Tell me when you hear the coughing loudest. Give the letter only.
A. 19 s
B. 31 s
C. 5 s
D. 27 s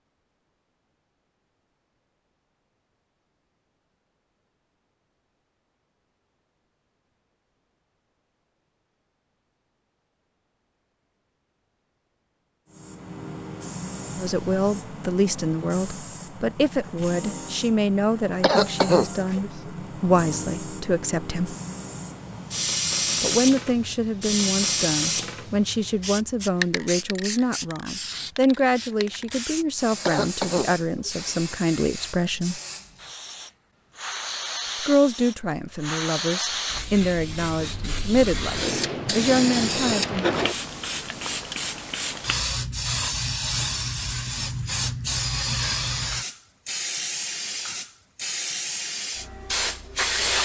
A.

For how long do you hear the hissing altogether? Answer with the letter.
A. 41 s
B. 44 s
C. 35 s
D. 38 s
D.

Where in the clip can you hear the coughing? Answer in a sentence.
The coughing can be heard from 18.4 to 19.7 s and from 30.1 to 31.3 s.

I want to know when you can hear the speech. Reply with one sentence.
The speech can be heard from 14.2 to 21.6 s, from 23.2 to 32.6 s and from 34.9 to 40.2 s.